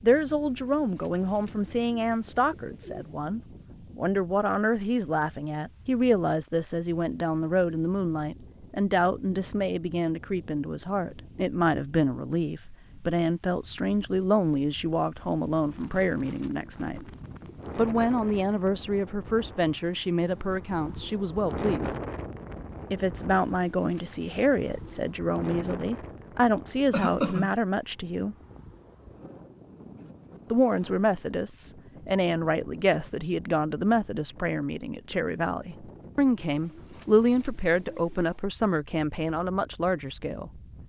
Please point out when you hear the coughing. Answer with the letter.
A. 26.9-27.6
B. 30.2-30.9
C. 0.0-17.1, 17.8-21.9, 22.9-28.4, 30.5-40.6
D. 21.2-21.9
A.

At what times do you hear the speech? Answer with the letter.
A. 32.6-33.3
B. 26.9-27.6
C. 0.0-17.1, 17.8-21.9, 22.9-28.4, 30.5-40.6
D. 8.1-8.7
C.